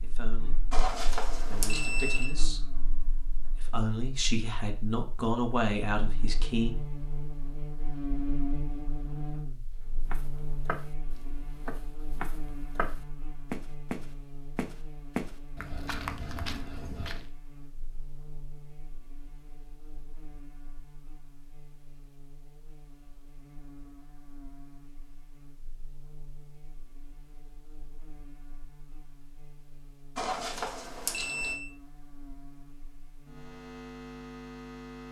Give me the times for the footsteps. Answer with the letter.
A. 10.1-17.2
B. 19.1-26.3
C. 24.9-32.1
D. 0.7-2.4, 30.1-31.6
A.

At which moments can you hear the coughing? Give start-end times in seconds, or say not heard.
not heard.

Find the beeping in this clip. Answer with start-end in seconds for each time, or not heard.
0.7-2.4, 30.1-31.6.